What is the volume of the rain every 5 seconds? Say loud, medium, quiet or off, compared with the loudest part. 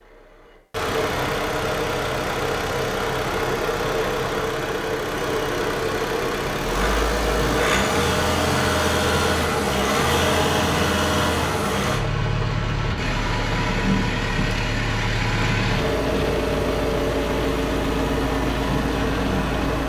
off, loud, loud, loud.